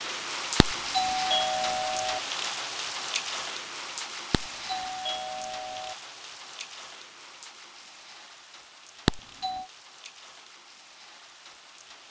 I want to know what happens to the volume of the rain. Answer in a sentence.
The volume of the rain goes down.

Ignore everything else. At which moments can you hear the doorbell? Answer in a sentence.
The doorbell can be heard from 0.6 to 2.2 s, from 4.3 to 6.0 s and from 9.1 to 9.7 s.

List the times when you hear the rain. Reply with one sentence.
The rain can be heard from 0.0 to 12.0 s.